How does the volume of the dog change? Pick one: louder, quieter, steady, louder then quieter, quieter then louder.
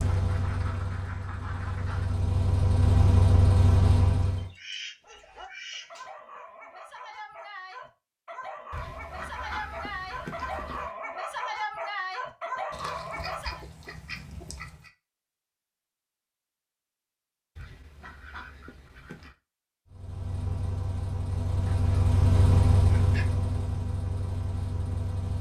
louder.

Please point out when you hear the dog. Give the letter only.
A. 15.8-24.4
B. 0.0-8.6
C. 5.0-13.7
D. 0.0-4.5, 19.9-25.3
C.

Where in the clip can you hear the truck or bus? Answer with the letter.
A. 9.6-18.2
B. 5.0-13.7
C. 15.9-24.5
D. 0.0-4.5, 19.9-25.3
D.